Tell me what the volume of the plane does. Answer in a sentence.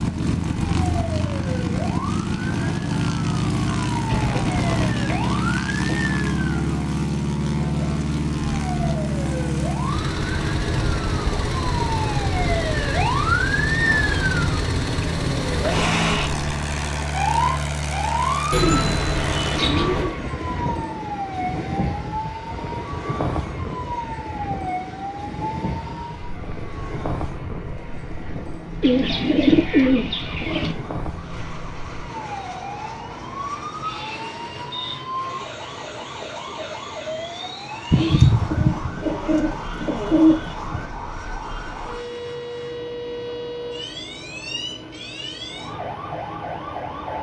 The volume of the plane goes down.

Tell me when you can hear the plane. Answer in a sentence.
The plane can be heard from 0.0 to 47.1 s.